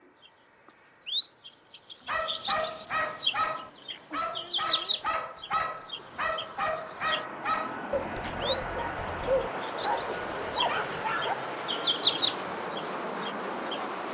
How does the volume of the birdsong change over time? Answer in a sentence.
The loudness of the birdsong goes down, then up.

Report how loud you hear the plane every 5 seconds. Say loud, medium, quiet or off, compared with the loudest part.
quiet, loud, loud.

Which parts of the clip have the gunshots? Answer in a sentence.
The gunshots can't be heard in this clip.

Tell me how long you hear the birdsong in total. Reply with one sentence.
The birdsong can be heard for 13 seconds in total.